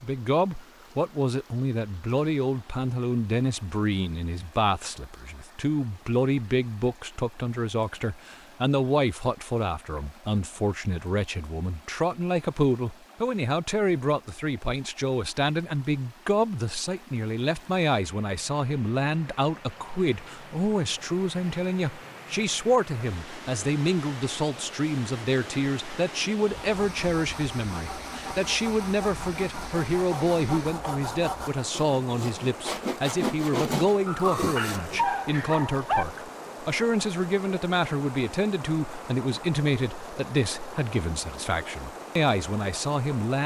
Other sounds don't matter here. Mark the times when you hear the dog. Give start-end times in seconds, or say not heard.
34.0-36.0.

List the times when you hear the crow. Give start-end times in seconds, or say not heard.
not heard.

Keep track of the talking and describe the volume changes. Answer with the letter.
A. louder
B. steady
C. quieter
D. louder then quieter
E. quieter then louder
B.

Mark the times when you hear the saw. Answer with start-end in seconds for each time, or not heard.
26.5-35.0.